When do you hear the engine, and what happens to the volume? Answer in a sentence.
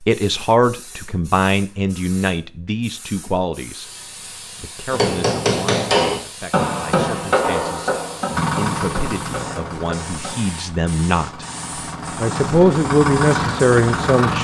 You can hear the engine from 8.3 to 14.3 s, getting quieter then louder.